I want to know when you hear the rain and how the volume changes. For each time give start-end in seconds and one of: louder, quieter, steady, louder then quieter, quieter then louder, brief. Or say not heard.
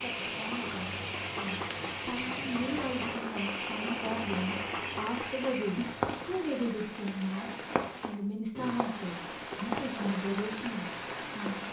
0.0-11.6 steady.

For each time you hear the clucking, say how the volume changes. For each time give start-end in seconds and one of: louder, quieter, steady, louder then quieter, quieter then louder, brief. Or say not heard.
0.0-5.9 steady.